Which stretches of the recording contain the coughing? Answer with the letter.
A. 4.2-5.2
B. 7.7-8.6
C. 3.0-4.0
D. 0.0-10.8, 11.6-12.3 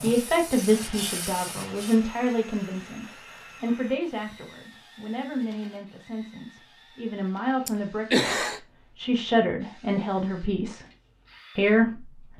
B.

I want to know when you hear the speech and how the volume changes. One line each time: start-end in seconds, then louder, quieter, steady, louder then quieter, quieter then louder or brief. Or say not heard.
0.0-10.8 quieter then louder
11.6-12.3 brief.